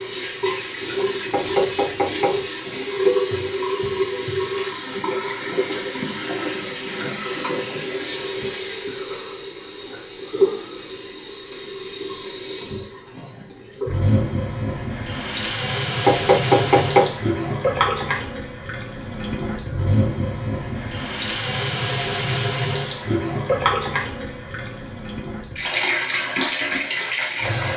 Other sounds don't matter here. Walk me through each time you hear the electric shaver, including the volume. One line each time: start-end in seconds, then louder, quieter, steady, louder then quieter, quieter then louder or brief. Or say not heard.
not heard.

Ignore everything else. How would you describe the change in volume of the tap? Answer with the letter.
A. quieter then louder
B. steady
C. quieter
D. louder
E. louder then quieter
B.